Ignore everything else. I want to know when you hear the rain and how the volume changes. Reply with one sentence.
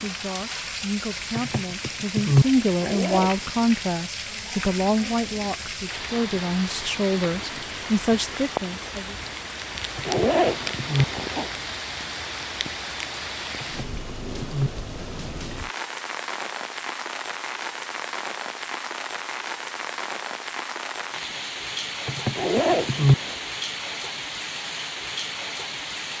The rain can be heard from 0.0 to 26.1 s, at a steady volume.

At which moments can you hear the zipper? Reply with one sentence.
You can hear the zipper from 2.8 to 3.6 s, from 10.1 to 11.5 s and from 22.4 to 23.4 s.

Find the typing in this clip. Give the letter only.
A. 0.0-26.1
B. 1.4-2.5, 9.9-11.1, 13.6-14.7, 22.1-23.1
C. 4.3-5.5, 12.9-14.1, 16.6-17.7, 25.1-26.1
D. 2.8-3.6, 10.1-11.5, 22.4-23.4
B.